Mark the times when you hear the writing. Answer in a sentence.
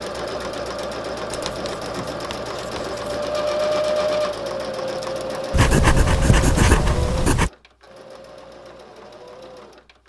The writing can be heard from 1.3 to 3.0 s and from 5.5 to 7.5 s.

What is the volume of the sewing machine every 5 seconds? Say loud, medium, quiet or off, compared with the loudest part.
loud, medium.